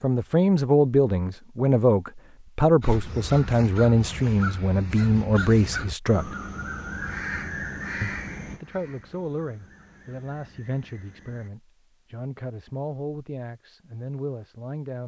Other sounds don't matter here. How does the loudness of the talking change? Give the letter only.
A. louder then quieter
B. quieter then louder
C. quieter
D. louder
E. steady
C.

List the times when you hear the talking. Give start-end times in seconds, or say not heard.
0.0-6.3, 8.0-15.0.